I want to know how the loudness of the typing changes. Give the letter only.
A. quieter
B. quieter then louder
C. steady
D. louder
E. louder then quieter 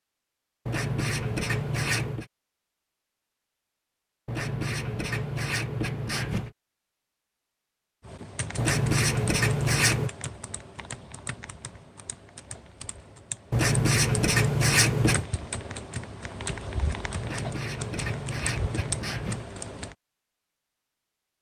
B.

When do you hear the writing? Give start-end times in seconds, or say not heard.
0.7-2.2, 4.2-6.5, 8.6-10.1, 13.5-15.2, 17.2-19.4.